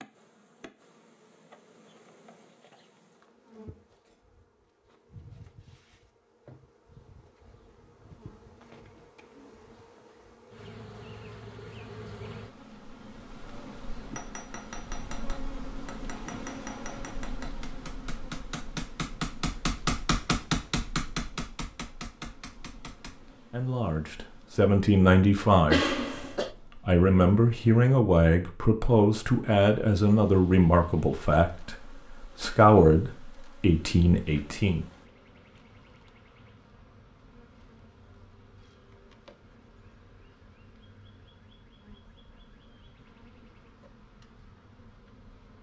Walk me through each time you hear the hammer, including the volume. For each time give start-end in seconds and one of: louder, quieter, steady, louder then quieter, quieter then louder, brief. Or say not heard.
14.2-23.3 louder then quieter.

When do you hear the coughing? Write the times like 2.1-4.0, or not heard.
25.7-26.5.